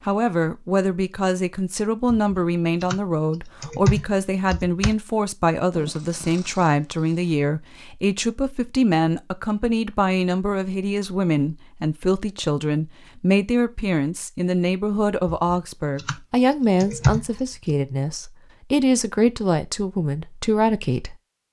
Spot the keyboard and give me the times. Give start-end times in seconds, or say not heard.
2.1-3.0, 3.6-5.0, 15.3-16.1, 16.8-17.8.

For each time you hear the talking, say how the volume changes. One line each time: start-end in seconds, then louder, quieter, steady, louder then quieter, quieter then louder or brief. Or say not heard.
0.1-21.1 steady.